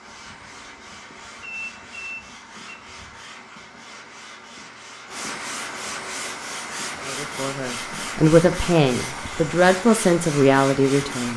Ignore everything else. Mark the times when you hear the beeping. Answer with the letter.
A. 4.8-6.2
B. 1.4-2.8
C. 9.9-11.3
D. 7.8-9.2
B.